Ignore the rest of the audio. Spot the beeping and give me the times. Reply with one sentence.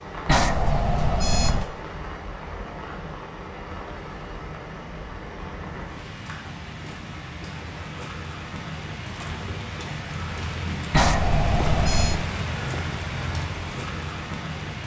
The beeping can be heard from 0.2 to 1.7 s and from 10.9 to 12.2 s.